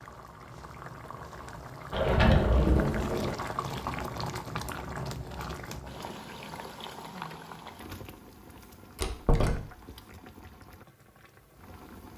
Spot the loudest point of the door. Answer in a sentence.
The volume of the door peaks at 2 seconds.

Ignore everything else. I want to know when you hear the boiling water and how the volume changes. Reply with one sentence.
You can hear the boiling water from 0.0 to 12.1 s, getting louder then quieter.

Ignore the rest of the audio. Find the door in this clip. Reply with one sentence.
The door can be heard from 1.9 to 3.5 s and from 8.9 to 9.7 s.